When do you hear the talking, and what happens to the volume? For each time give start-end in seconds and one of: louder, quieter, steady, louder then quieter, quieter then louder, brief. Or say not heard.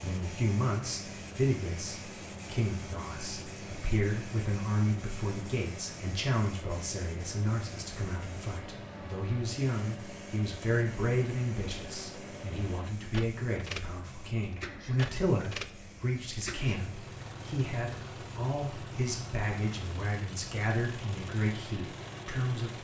0.0-22.7 steady.